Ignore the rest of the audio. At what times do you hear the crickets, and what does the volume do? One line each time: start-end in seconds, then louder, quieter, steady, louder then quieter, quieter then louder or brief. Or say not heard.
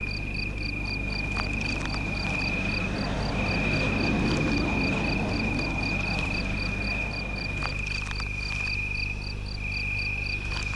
0.0-10.7 steady.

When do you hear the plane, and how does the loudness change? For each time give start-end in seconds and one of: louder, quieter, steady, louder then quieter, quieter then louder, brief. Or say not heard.
0.0-10.7 louder then quieter.